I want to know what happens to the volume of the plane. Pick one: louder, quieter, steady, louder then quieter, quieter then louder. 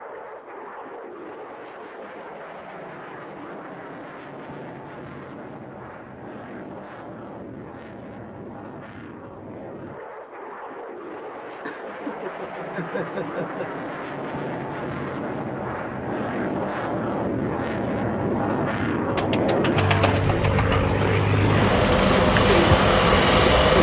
louder.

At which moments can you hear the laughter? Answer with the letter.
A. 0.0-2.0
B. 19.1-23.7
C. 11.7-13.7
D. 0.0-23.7
C.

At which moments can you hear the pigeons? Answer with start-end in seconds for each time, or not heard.
19.1-23.7.